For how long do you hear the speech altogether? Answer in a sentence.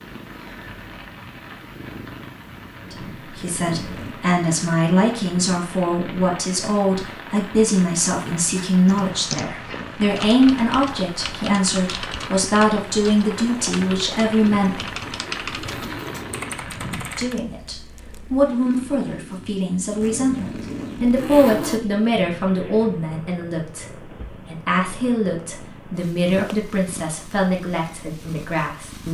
You can hear the speech for 24 seconds altogether.